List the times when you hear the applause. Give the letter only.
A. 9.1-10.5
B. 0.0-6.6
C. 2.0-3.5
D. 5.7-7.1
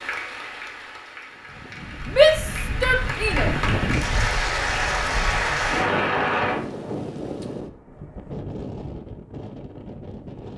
B.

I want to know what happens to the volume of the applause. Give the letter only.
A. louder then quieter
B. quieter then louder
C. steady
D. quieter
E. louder
E.